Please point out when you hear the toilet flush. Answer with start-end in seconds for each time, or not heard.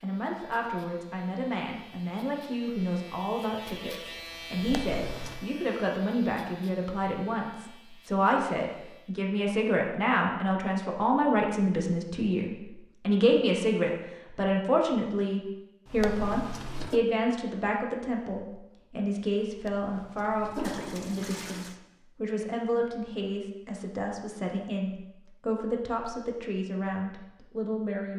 4.5-5.5, 15.8-17.0, 19.6-21.8.